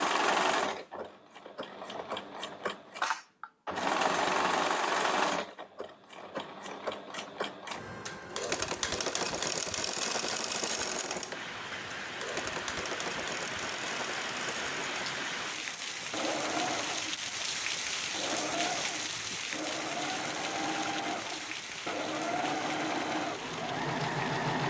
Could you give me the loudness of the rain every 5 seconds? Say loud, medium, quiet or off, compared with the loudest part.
off, off, loud, loud, medium.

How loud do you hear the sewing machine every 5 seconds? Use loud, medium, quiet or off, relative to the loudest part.
loud, loud, medium, medium, loud.